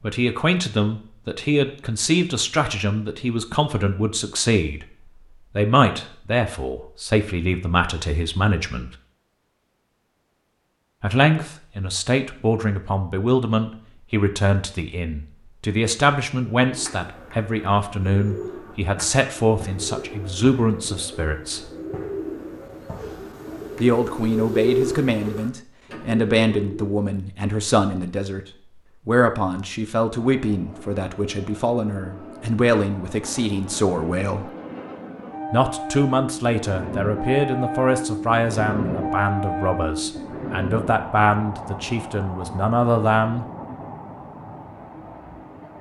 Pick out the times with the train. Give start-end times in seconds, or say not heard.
30.2-45.7.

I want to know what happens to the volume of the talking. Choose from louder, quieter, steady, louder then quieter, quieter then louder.
steady.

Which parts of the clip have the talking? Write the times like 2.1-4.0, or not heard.
0.0-8.9, 11.0-21.7, 23.8-28.4, 29.1-34.5, 35.5-43.5.